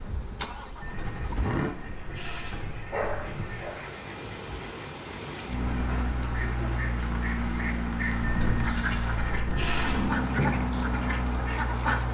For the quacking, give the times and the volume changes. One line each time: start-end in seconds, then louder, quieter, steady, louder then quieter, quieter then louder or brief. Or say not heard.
0.8-12.0 louder.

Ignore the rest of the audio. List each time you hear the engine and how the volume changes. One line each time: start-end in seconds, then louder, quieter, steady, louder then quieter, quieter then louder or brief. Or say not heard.
0.0-1.8 brief
5.5-12.0 steady.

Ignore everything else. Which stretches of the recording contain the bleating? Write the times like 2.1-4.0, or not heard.
0.8-3.8, 8.2-10.2.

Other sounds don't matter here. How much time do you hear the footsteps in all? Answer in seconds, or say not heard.
not heard.